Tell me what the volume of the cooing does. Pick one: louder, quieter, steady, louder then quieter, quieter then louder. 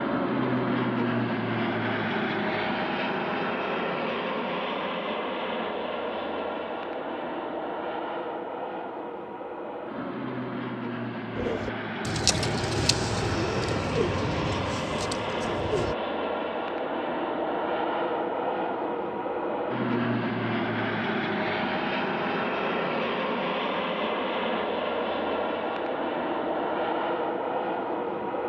quieter.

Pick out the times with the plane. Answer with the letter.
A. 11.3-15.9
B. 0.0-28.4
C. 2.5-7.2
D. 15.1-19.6
B.